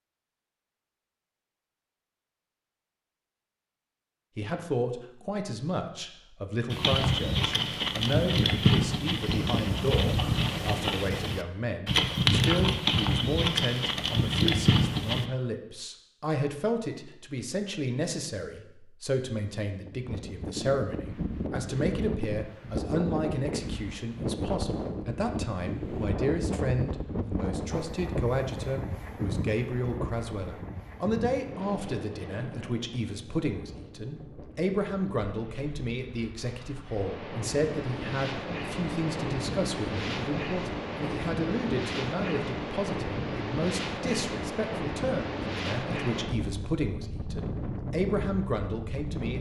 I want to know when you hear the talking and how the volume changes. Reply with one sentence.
The talking can be heard from 4.3 to 49.3 s, at a steady volume.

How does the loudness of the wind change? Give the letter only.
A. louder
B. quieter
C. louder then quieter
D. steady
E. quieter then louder
E.